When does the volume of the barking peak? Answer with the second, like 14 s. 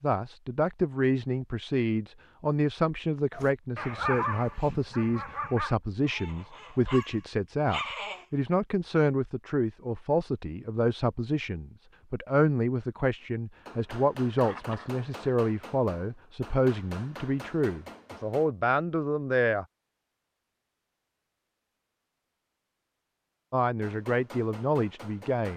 4 s.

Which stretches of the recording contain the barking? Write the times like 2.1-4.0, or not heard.
3.3-8.2.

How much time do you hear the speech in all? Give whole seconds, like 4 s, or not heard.
22 s.